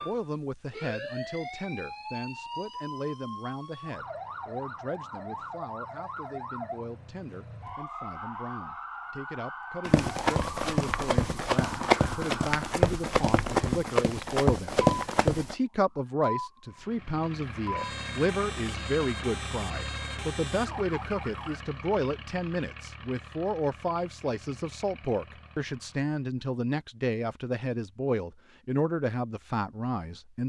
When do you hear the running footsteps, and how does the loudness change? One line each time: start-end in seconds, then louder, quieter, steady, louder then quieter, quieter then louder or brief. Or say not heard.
9.8-15.6 steady.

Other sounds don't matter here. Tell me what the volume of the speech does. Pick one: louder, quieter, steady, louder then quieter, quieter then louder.
louder.